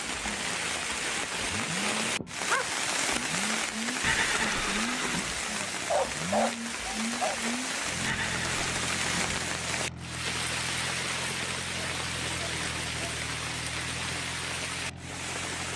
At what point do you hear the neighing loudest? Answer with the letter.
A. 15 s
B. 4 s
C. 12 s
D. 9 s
B.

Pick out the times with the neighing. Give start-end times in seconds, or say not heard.
4.0-5.3, 8.0-9.4.